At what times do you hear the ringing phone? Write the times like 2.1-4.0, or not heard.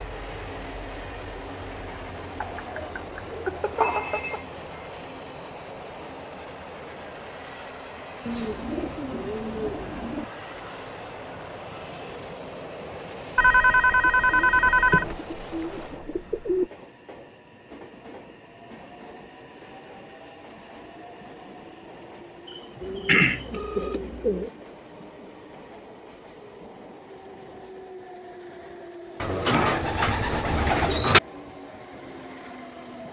3.5-4.4, 13.3-15.2, 22.4-23.9.